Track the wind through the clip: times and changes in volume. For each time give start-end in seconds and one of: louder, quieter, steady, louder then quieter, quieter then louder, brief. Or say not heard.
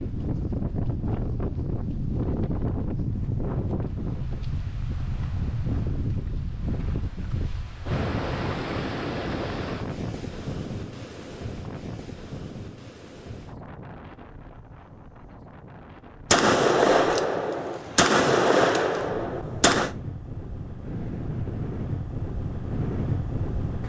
0.0-23.8 quieter then louder.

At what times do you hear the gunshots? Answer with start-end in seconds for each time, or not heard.
16.3-19.9.